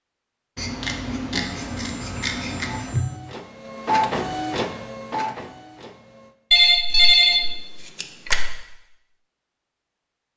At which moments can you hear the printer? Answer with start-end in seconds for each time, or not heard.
2.6-6.3.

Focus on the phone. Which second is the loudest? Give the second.
7 s.